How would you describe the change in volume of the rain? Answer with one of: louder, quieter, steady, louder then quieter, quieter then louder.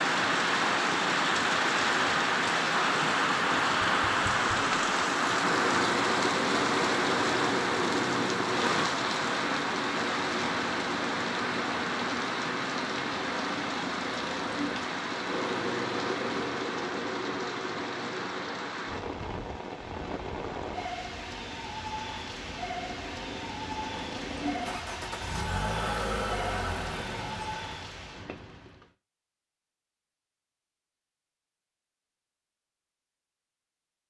quieter.